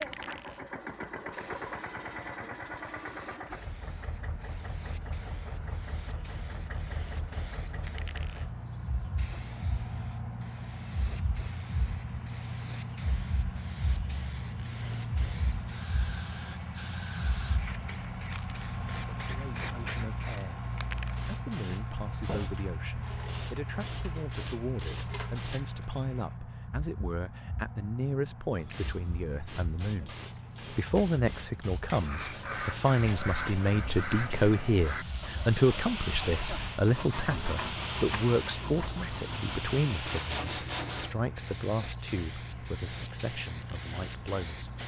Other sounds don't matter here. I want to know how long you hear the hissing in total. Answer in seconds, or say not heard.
42 s.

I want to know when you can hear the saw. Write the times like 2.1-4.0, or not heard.
31.9-41.2.